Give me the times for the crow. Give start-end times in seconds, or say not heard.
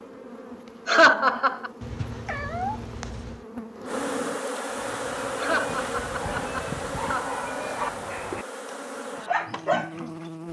not heard.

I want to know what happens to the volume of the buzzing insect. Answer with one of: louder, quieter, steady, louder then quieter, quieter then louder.
louder then quieter.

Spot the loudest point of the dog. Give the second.
10 s.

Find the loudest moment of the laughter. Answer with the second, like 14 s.
1 s.